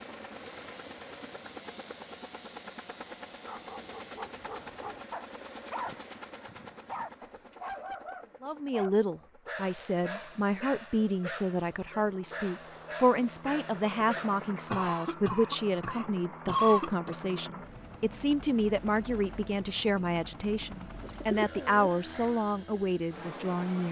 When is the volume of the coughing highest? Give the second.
17 s.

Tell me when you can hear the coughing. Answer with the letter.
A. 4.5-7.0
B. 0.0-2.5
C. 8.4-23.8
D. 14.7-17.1
D.